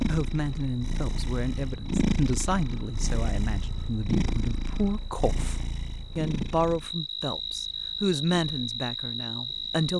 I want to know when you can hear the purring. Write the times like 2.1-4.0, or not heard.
0.0-9.9.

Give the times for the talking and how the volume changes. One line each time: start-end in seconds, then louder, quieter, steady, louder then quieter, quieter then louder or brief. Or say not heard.
0.1-9.9 steady.